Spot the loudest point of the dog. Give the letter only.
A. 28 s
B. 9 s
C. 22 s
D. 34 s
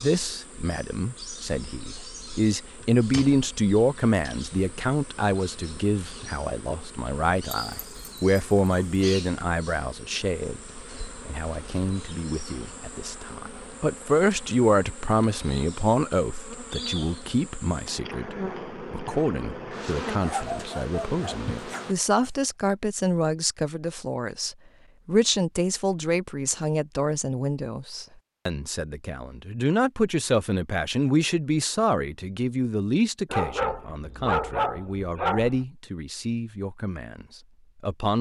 D.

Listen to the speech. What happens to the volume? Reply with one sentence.
The loudness of the speech stays about the same.